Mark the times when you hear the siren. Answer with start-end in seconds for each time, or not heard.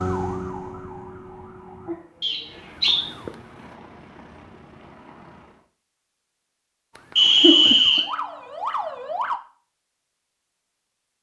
0.0-3.5, 7.0-9.4.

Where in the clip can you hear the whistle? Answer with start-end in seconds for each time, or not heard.
2.2-3.0, 7.2-8.1.